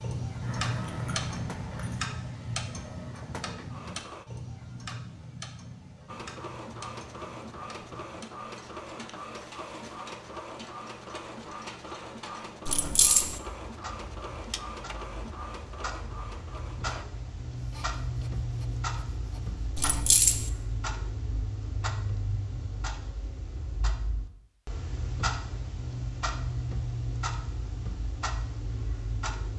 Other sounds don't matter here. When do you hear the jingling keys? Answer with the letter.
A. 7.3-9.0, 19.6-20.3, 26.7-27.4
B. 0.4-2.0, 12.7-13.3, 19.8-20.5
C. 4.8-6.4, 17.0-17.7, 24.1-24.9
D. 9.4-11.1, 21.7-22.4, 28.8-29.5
B.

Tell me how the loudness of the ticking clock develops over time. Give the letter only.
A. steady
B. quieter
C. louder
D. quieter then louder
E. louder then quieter
D.